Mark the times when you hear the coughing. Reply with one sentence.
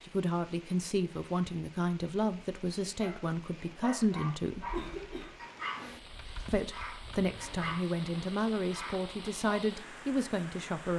The coughing can be heard from 4.5 to 5.5 s.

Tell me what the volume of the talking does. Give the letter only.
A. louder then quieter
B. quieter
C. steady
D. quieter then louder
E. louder
C.